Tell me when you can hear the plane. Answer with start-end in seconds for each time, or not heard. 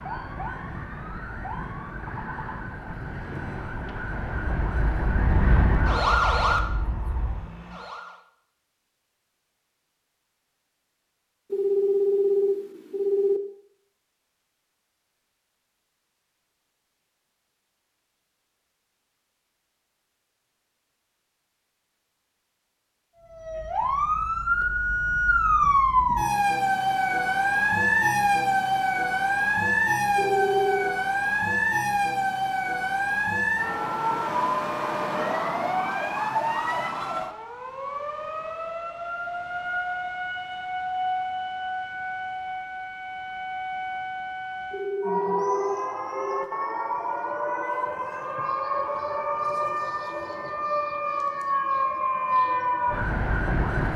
4.5-7.5.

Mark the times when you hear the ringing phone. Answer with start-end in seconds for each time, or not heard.
11.5-13.4, 30.1-30.9, 44.7-46.5.